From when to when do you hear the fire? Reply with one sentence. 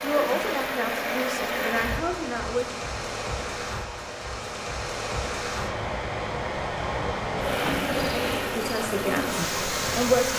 You can't hear the fire here.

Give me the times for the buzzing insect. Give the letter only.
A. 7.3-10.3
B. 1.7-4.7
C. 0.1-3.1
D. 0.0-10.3
A.